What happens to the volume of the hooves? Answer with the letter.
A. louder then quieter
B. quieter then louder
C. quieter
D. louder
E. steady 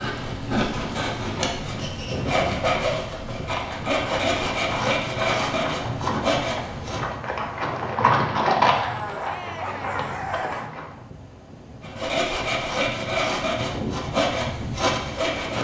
A.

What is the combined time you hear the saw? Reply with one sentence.
You can hear the saw for 11 seconds altogether.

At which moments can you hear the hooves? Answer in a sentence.
The hooves can be heard from 3.5 to 10.9 s.